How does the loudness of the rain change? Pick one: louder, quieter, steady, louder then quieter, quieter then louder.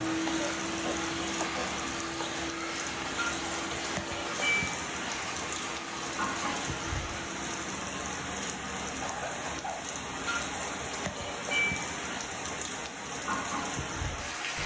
steady.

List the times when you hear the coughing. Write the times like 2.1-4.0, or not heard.
0.2-1.7, 9.0-9.9.